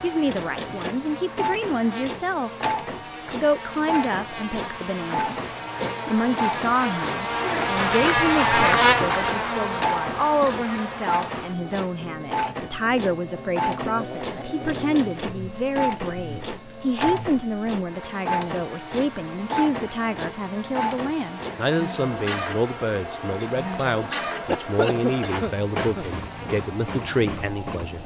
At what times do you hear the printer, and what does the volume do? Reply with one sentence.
You can hear the printer from 0.0 to 28.0 s, at a steady volume.